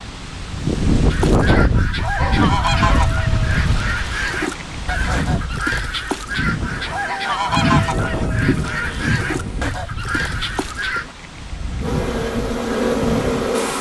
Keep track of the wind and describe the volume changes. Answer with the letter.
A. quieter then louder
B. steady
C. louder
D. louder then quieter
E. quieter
E.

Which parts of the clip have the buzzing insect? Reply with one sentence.
The buzzing insect can be heard from 6.7 to 9.7 s and from 11.8 to 13.7 s.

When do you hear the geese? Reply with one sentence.
You can hear the geese from 1.1 to 11.2 s.